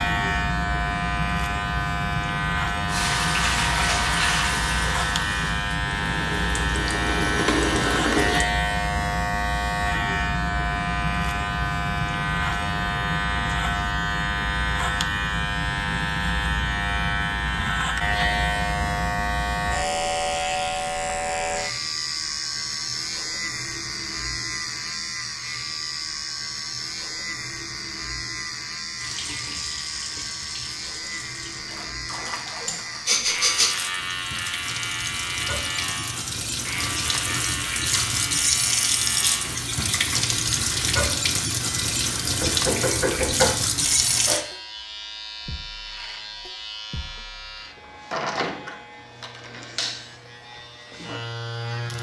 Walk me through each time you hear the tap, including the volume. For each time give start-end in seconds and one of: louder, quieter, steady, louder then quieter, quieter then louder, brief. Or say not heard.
2.9-8.4 quieter then louder
28.9-44.5 louder.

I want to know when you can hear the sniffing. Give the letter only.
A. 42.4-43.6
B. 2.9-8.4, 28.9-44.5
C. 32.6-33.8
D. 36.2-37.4
C.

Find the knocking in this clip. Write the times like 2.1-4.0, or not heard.
42.4-43.6.